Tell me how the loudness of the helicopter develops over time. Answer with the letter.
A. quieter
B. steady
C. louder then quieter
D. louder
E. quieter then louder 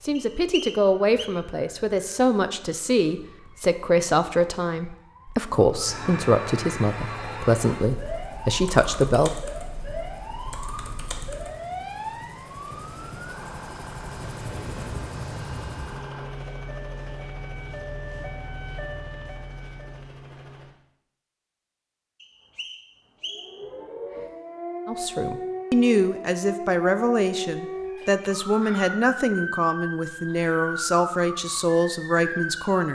C.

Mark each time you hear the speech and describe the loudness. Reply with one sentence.
You can hear the speech from 0.0 to 9.3 s, at a steady volume; and from 24.9 to 32.9 s, at a steady volume.